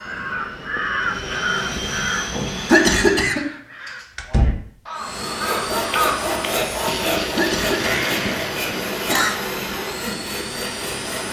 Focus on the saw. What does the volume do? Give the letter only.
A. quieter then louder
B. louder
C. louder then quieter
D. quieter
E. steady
D.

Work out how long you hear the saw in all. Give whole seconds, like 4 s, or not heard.
6 s.